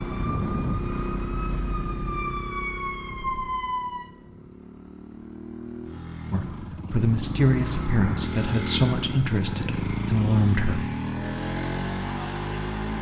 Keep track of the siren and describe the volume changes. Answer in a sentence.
The volume of the siren goes up.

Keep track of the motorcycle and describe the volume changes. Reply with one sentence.
The loudness of the motorcycle goes down, then up.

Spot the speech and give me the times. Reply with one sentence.
You can hear the speech from 6.3 to 10.8 s.